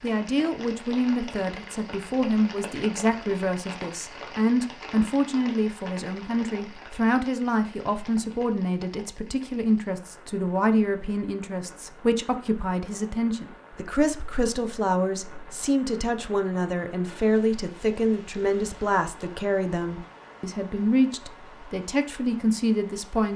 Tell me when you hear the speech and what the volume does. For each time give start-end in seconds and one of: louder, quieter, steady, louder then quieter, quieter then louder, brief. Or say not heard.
0.0-23.3 steady.